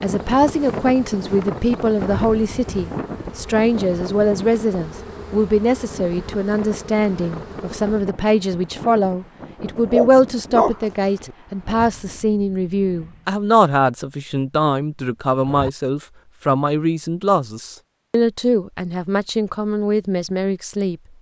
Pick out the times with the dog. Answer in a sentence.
The dog can be heard from 9.8 to 11.3 s.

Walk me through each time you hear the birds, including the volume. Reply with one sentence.
You can't hear the birds here.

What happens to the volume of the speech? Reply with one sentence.
The loudness of the speech stays about the same.